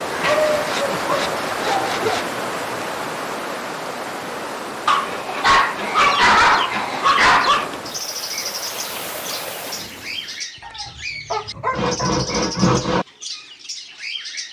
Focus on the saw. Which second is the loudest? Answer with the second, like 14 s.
13 s.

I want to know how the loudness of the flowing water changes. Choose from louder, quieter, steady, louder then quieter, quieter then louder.
quieter.